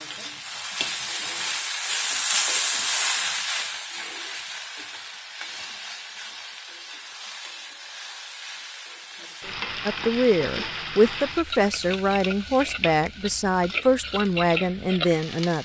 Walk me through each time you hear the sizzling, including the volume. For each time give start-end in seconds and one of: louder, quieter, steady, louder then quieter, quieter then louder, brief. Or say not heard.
0.0-15.6 quieter then louder.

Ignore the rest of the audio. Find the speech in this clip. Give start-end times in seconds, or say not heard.
9.8-15.6.